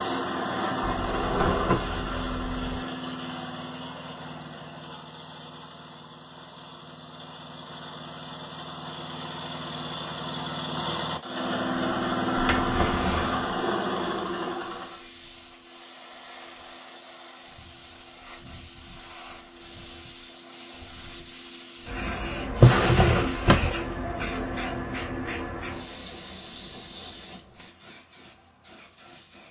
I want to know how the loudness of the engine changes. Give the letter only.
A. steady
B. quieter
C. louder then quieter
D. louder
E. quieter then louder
E.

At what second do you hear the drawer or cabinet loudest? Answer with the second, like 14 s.
23 s.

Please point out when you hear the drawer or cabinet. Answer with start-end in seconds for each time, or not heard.
0.9-2.6, 12.3-13.3, 22.5-23.8.